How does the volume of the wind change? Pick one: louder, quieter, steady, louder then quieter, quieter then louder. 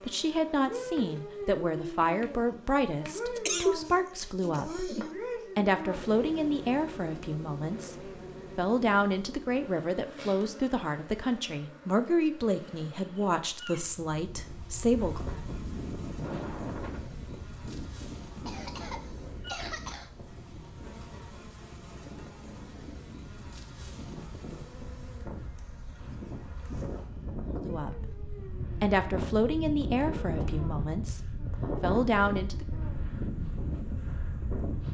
quieter then louder.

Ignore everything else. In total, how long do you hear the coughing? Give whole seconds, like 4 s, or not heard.
3 s.